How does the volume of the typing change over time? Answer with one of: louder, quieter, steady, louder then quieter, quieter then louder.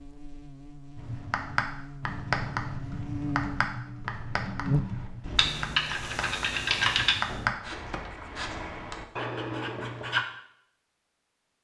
louder.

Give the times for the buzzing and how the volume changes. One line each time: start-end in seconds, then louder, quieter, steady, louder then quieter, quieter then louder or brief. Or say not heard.
0.0-7.5 louder then quieter.